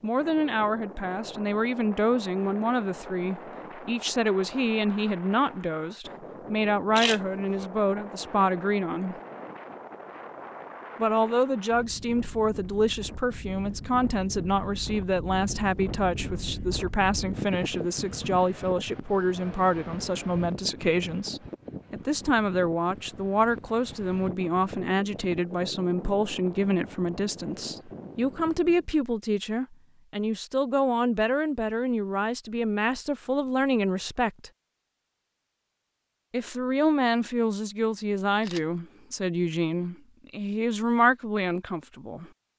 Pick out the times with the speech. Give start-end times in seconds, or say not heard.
0.0-9.2, 10.9-34.5, 36.3-42.3.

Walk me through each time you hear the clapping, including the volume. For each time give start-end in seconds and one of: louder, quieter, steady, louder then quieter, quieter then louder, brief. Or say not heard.
not heard.